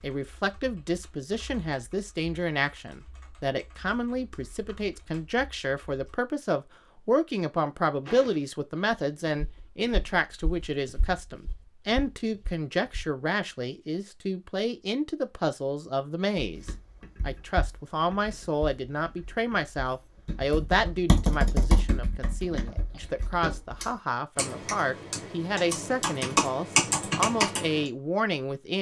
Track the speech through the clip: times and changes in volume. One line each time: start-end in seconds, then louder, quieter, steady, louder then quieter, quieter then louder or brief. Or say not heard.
0.0-28.7 steady.